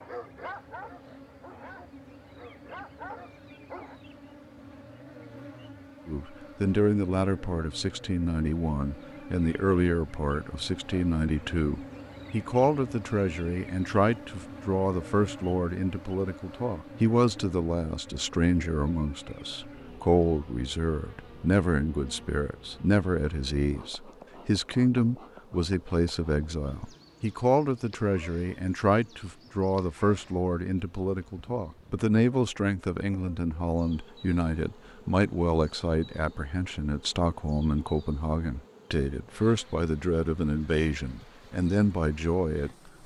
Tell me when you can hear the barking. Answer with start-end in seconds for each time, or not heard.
0.0-4.0.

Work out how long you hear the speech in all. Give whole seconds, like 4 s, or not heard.
37 s.